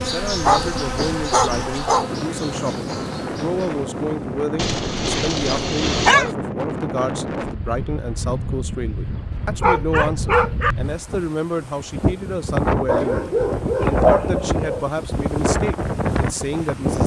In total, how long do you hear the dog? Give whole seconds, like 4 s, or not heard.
7 s.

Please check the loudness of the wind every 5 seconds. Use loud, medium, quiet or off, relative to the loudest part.
medium, medium, loud, loud.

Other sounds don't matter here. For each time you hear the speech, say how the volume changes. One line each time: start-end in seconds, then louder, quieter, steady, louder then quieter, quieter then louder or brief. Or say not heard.
0.0-17.0 steady.